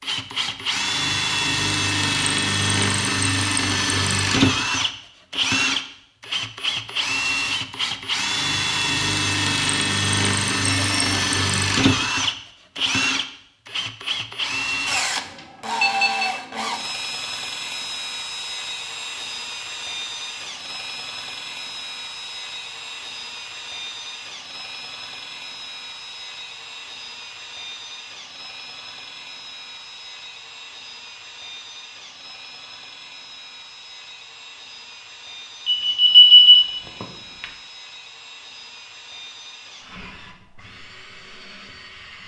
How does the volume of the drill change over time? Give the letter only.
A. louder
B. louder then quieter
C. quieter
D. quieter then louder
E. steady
C.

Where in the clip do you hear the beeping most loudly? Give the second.
36 s.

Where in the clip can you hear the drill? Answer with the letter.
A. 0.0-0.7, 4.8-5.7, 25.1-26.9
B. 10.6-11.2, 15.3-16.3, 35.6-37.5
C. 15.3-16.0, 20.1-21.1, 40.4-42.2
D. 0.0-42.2
D.